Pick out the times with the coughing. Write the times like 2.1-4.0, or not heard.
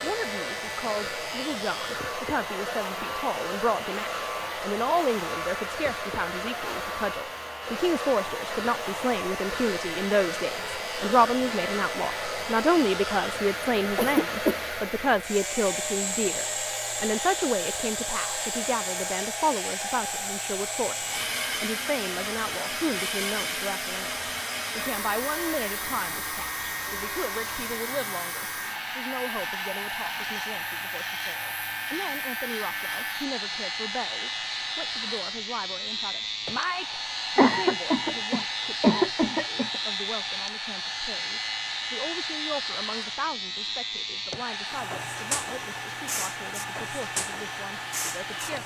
13.9-14.6, 37.4-39.8.